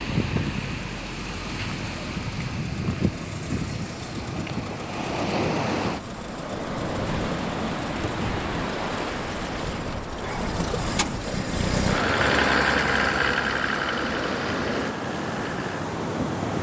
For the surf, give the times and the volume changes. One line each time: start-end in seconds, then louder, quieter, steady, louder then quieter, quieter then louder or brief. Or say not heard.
0.0-16.5 steady.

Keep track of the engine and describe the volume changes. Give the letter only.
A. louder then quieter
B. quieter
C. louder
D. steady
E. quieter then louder
C.